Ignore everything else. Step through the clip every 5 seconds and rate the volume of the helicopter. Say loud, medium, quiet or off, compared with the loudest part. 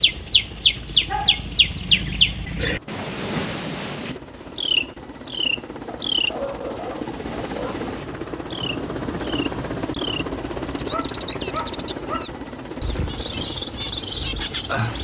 medium, loud, loud.